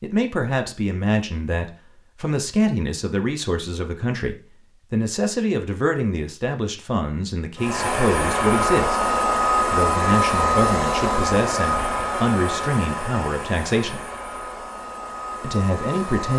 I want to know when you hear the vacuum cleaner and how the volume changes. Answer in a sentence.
The vacuum cleaner can be heard from 7.5 to 16.3 s, getting quieter.